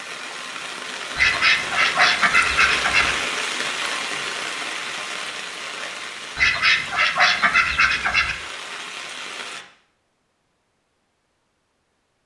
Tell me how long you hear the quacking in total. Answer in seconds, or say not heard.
4 s.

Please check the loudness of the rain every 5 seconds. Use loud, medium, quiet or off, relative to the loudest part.
loud, medium, off.